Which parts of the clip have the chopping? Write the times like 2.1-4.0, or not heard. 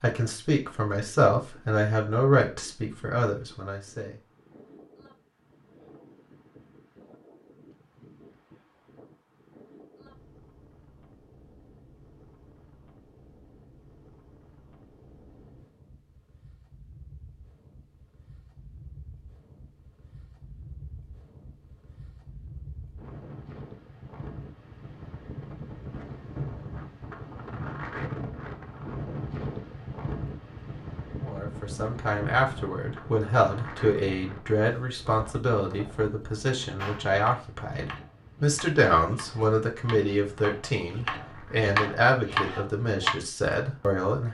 36.8-43.1.